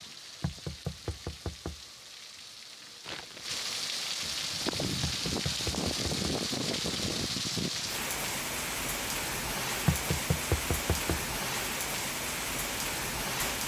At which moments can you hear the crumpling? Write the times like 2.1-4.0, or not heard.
3.0-3.6.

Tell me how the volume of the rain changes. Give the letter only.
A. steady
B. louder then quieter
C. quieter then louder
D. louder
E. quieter
D.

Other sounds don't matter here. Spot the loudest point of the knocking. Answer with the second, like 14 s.
10 s.